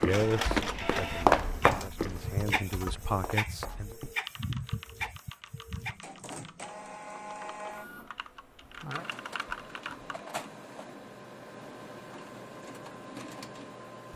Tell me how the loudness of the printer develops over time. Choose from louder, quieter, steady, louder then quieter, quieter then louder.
quieter.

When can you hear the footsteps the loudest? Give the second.
1 s.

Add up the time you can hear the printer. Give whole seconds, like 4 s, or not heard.
14 s.